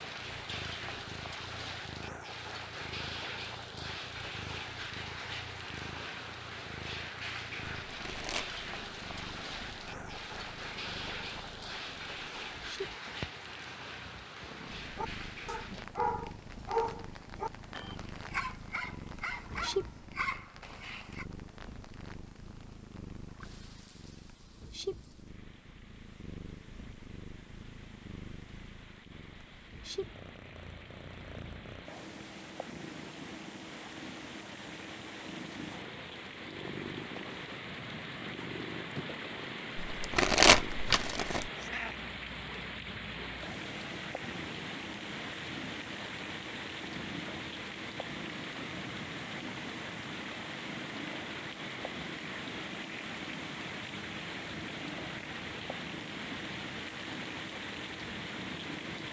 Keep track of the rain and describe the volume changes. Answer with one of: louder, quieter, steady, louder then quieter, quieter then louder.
quieter then louder.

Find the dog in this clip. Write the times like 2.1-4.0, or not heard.
14.9-21.2.